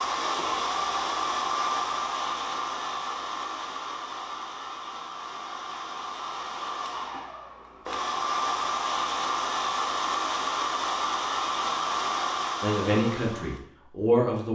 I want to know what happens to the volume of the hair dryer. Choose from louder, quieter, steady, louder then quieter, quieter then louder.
quieter then louder.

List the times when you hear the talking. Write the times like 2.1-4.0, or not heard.
12.6-14.5.